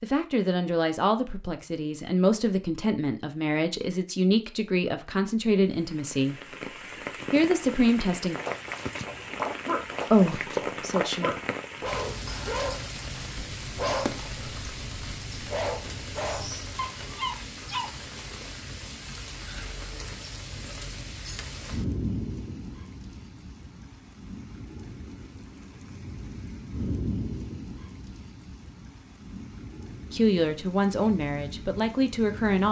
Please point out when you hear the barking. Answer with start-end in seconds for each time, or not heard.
8.3-17.9.